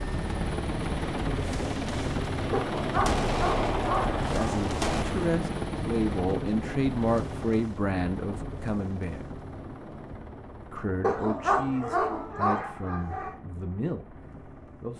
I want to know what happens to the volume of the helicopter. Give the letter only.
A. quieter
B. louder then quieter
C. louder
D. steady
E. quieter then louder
A.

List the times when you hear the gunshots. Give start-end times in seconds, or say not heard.
3.0-5.0.